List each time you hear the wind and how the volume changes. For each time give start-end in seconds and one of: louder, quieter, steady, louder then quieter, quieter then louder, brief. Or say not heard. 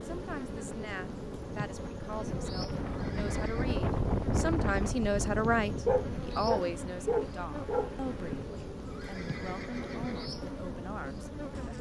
0.0-11.7 louder then quieter.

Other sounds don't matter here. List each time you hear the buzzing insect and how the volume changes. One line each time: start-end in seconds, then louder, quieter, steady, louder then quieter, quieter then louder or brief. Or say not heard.
0.0-11.7 steady.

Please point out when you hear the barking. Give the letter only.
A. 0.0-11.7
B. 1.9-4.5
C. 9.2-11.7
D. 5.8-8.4
D.